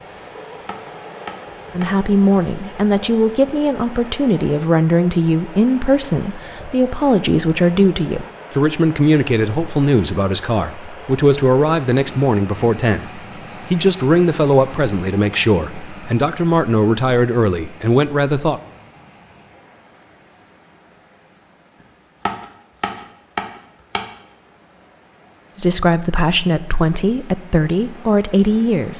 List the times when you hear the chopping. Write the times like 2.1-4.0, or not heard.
0.7-2.0, 21.8-24.1.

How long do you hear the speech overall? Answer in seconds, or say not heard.
20 s.